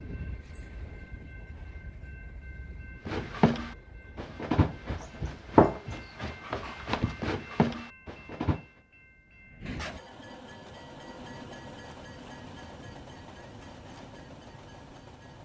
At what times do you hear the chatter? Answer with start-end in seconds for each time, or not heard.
not heard.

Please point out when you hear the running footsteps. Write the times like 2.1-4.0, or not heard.
3.0-8.7.